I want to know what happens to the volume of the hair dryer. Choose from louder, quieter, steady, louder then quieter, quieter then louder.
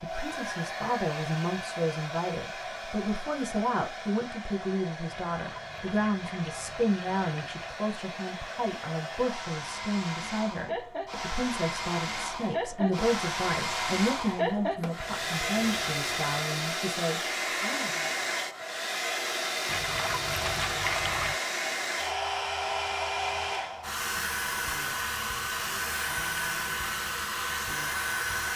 louder.